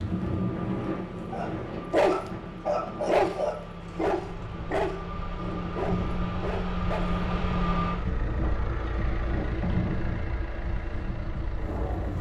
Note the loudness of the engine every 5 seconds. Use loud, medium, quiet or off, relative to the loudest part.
medium, loud, medium.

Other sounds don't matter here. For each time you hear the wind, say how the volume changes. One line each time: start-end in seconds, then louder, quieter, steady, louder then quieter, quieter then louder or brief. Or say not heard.
0.0-12.1 quieter then louder.